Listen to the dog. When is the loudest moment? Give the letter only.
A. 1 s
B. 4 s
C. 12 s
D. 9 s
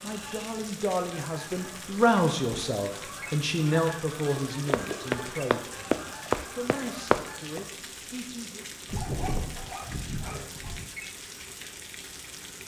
D.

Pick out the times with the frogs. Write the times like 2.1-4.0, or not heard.
not heard.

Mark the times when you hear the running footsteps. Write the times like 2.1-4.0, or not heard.
4.7-7.7.